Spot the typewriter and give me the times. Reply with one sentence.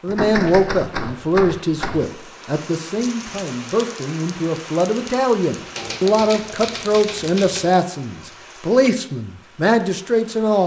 You can hear the typewriter from 0.1 to 2.1 s and from 5.8 to 7.8 s.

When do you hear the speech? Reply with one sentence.
The speech can be heard from 0.0 to 10.6 s.